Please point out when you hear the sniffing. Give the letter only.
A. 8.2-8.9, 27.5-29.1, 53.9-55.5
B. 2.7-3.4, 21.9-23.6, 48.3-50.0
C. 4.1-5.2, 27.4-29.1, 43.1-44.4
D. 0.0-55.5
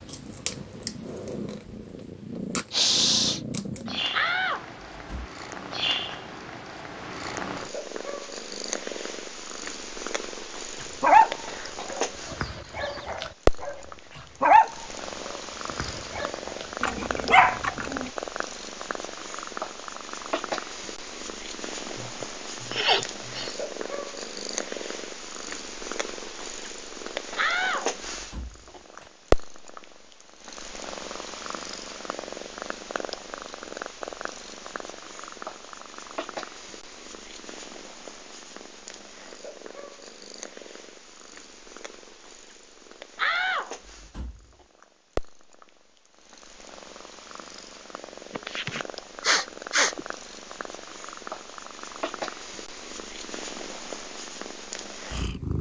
B.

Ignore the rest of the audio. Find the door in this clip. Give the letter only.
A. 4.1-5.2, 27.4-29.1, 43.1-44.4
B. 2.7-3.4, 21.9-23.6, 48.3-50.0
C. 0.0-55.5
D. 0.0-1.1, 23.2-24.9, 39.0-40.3
A.